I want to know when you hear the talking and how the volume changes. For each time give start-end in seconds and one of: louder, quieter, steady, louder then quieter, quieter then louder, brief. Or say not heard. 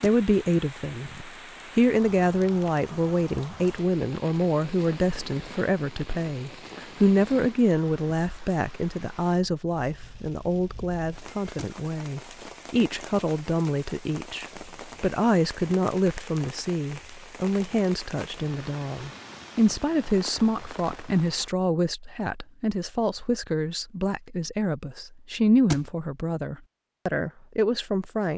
0.0-28.3 steady.